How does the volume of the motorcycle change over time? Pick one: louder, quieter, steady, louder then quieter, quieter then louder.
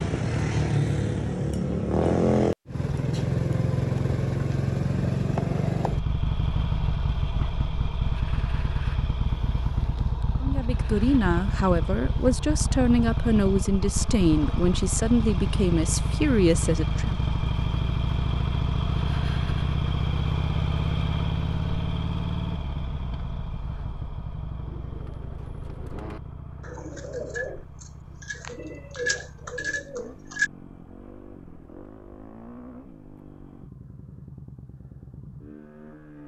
quieter.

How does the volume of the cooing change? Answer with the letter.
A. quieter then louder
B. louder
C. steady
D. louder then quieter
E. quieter
B.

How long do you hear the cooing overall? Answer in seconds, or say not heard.
6 s.